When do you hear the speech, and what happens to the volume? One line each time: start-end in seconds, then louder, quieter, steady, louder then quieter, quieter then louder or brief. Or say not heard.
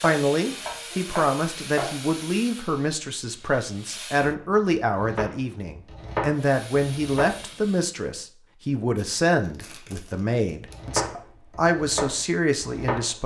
0.0-13.2 steady.